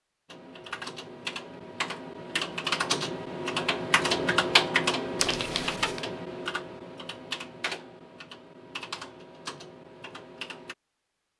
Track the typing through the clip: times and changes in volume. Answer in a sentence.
You can hear the typing from 0.2 to 10.8 s, getting louder then quieter.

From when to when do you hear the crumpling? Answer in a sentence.
The crumpling can be heard from 5.2 to 6.0 s.